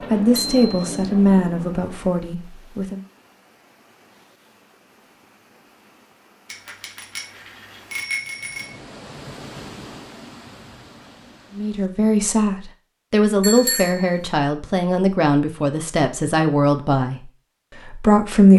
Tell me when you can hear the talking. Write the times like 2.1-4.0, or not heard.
0.1-3.0, 11.6-17.2, 17.9-18.5.